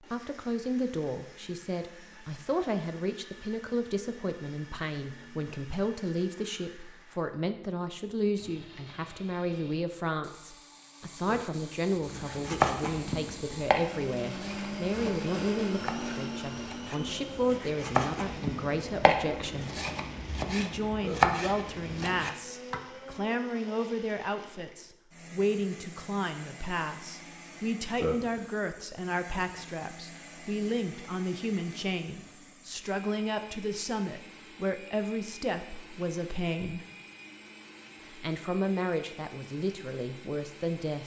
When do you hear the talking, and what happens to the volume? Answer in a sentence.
You can hear the talking from 0.0 to 19.8 s, at a steady volume; from 20.4 to 36.8 s, at a steady volume; and briefly from 38.1 to 41.0 s.